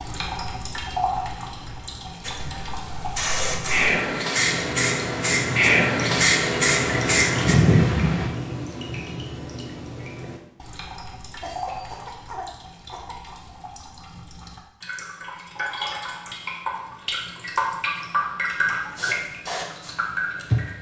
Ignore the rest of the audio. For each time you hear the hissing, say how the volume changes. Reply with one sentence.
You can hear the hissing from 2.2 to 8.3 s, getting louder; and briefly from 18.9 to 20.7 s.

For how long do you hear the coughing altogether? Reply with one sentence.
You can hear the coughing for 2 seconds altogether.